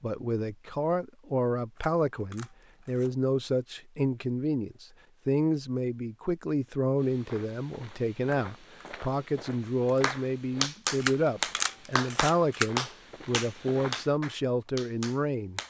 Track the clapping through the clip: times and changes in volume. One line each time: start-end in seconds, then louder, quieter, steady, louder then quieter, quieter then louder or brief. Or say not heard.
10.0-15.6 quieter.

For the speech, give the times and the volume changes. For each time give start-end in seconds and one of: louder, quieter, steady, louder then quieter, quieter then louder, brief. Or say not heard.
0.0-15.6 steady.